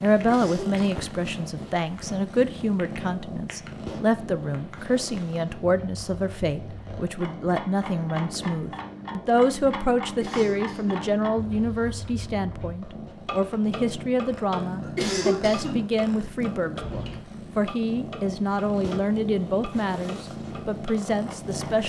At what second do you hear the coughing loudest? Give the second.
15 s.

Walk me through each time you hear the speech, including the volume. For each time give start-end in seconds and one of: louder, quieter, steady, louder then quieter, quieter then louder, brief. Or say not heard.
0.0-21.8 steady.